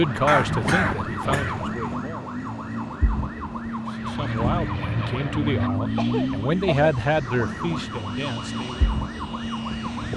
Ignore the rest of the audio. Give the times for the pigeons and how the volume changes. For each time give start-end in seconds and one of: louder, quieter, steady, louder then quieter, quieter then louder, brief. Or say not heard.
not heard.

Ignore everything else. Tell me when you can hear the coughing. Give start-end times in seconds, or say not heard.
0.2-1.6, 6.0-6.9.